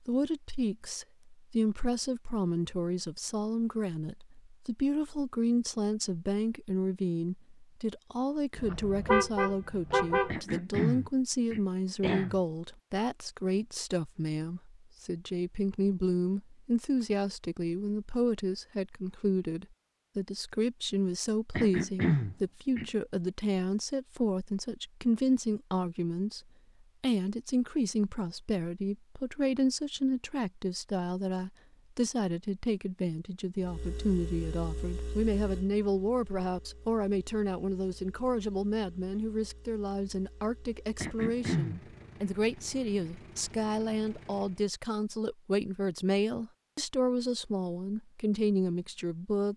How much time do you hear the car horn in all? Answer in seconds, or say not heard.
2 s.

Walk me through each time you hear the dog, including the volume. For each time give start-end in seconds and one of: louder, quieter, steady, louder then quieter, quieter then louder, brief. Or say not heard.
not heard.